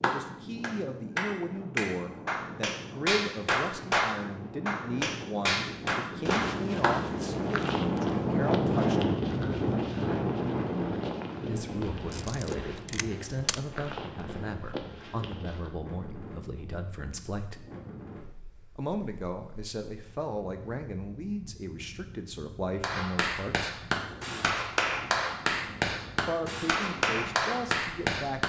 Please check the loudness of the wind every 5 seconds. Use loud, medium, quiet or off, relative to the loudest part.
quiet, loud, medium, quiet, quiet, quiet.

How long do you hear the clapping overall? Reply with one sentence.
You can hear the clapping for 13 seconds altogether.